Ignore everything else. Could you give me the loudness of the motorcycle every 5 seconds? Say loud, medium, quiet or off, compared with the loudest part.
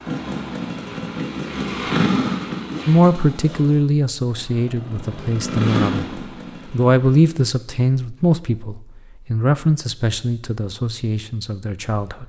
loud, loud, off.